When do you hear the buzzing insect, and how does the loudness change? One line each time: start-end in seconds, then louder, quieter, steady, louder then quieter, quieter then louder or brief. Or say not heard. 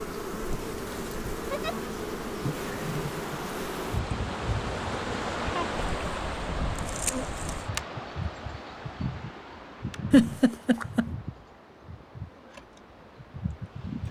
0.0-14.0 quieter.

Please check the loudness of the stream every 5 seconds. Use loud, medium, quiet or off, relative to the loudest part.
loud, loud, quiet.